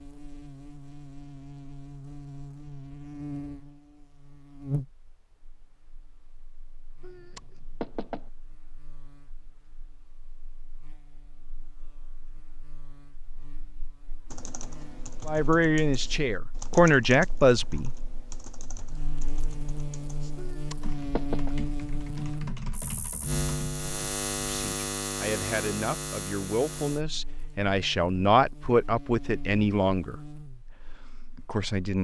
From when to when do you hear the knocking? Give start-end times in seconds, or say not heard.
7.0-8.3, 20.4-21.5.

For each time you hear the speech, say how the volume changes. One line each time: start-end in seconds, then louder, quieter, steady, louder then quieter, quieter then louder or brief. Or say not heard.
15.2-17.9 brief
24.5-31.9 louder then quieter.